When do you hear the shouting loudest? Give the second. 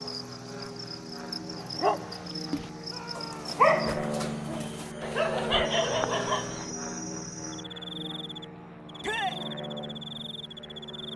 9 s.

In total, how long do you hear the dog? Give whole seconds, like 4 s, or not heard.
5 s.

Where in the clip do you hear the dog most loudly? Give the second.
4 s.